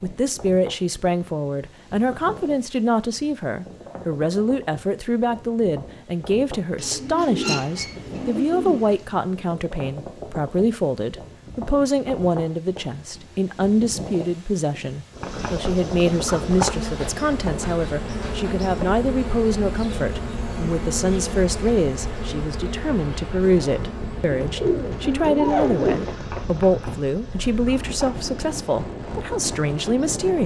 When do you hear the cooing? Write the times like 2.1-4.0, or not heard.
6.8-9.0, 24.4-26.1.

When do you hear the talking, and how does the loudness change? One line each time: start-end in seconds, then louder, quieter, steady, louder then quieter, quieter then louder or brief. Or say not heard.
0.0-30.4 steady.